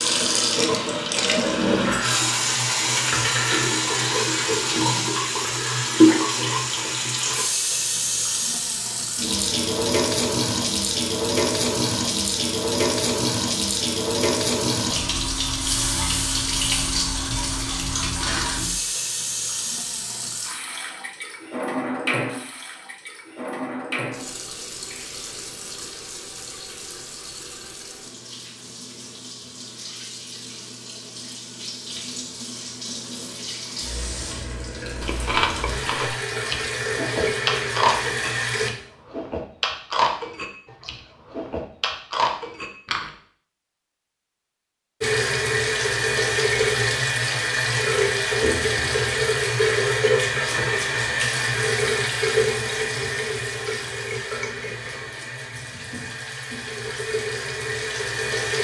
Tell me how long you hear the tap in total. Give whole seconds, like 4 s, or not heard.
52 s.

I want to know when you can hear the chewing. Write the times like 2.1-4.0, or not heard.
35.0-43.1.